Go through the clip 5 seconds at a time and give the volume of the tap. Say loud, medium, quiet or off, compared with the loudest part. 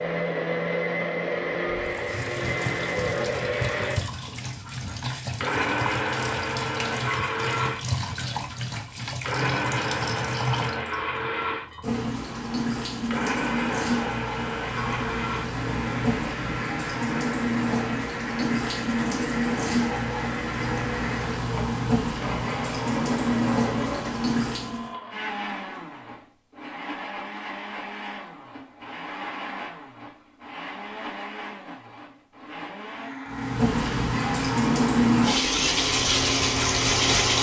quiet, medium, medium, medium, medium, off, loud, loud.